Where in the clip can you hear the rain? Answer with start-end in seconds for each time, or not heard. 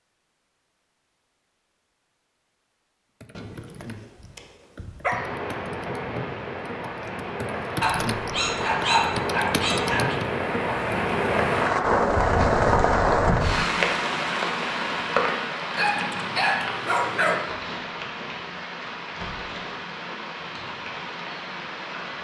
5.1-22.1.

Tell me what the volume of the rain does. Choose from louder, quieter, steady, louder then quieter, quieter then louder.
louder then quieter.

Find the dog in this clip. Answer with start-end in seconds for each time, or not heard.
3.4-5.2, 7.8-10.2, 15.8-17.4.